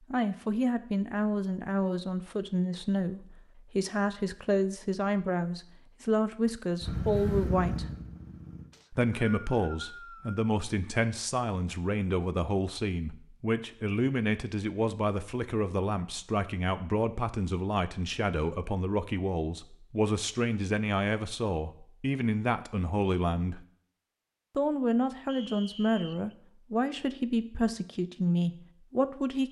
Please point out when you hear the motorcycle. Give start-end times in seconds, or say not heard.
6.8-8.7.